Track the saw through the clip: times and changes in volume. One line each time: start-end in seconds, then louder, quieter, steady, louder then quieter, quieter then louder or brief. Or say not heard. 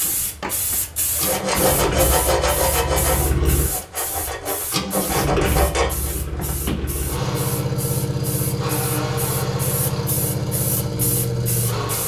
1.2-6.5 quieter then louder.